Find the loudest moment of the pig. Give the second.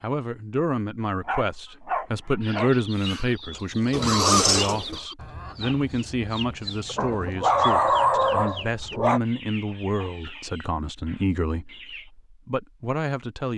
4 s.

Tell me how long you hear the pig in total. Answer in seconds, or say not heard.
2 s.